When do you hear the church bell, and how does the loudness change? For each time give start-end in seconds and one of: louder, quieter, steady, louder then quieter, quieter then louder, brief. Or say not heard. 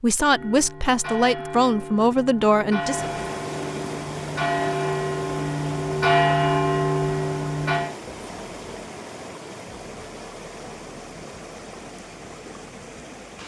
0.2-8.0 louder.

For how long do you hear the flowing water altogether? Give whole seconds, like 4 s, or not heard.
11 s.